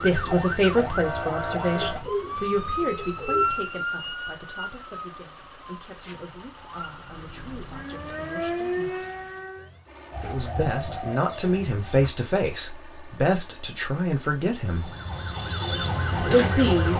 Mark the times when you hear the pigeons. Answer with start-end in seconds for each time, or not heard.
1.8-3.5, 10.1-12.1.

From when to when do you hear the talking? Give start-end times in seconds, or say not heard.
0.0-8.9, 10.2-14.9, 16.2-16.9.